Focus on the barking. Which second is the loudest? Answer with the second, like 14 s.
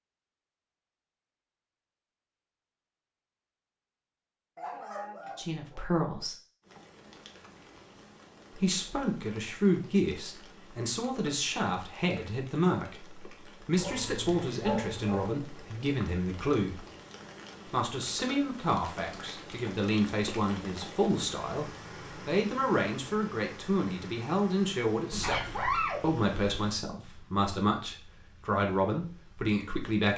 26 s.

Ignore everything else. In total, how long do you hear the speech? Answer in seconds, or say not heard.
22 s.